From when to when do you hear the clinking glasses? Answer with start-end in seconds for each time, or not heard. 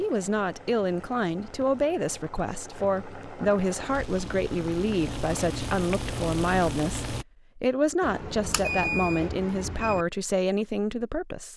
not heard.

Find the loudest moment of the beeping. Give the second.
9 s.